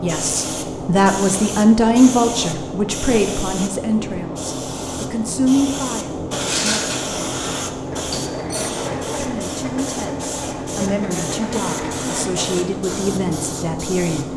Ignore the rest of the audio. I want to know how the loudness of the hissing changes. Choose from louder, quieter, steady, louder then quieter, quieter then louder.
steady.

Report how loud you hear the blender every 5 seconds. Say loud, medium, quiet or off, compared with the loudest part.
off, loud, loud.